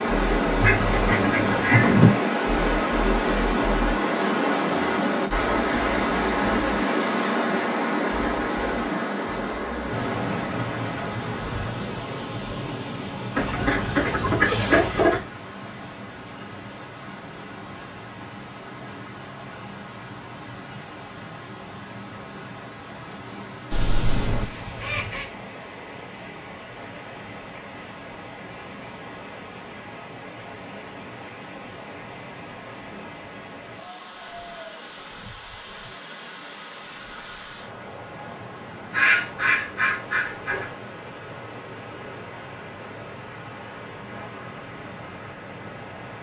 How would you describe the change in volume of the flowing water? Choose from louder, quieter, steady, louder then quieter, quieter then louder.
quieter.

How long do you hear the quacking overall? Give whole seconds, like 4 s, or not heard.
7 s.